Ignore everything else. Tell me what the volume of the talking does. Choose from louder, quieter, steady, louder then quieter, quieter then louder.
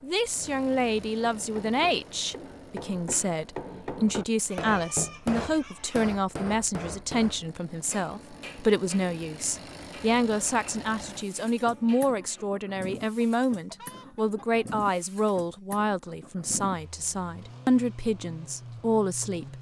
steady.